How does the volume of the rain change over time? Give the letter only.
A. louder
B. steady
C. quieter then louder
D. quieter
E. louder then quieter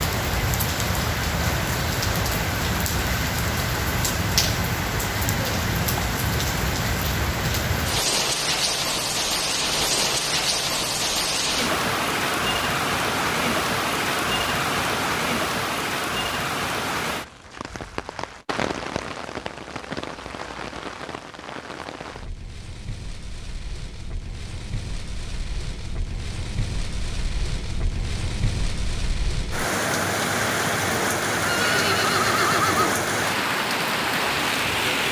C.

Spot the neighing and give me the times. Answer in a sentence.
The neighing can be heard from 31.4 to 33.0 s.